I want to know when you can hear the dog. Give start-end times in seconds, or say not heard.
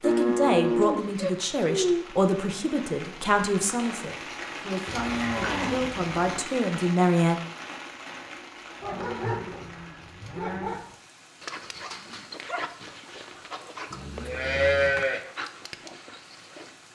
8.8-16.8.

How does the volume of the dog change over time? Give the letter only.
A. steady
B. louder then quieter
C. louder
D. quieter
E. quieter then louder
D.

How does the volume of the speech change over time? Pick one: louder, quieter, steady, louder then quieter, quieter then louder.
quieter then louder.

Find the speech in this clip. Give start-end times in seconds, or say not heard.
0.0-7.4.